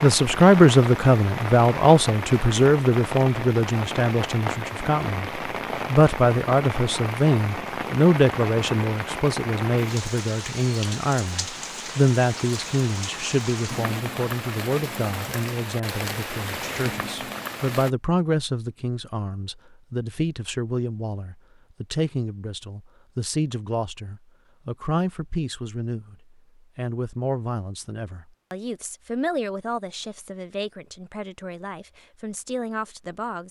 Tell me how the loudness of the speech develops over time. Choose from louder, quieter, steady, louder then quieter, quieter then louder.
quieter.